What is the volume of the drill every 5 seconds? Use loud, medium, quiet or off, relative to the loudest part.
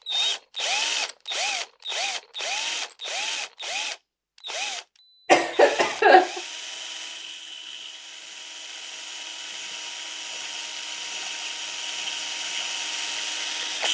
loud, medium, loud.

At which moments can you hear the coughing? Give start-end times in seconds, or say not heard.
5.2-6.4.